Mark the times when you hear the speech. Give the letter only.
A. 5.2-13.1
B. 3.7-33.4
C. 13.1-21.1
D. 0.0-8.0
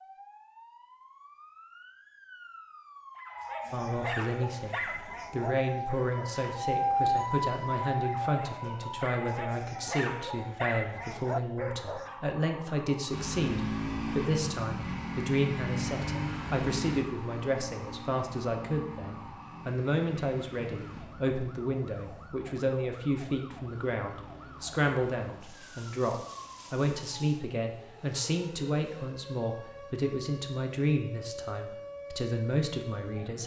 B.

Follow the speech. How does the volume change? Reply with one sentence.
The volume of the speech stays about the same.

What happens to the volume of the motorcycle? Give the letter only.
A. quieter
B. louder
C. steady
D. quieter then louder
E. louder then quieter
A.